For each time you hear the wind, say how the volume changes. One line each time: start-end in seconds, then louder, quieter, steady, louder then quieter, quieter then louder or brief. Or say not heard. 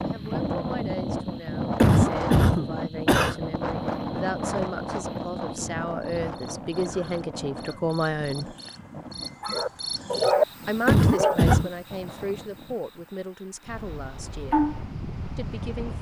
0.0-15.9 quieter.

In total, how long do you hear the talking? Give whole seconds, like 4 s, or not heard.
13 s.